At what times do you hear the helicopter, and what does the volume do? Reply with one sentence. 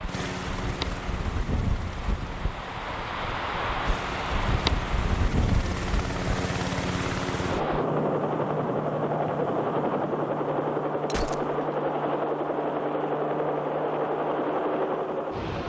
The helicopter can be heard from 0.0 to 15.6 s, getting louder.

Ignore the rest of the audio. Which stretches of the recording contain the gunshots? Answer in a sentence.
The gunshots can be heard from 11.1 to 11.8 s.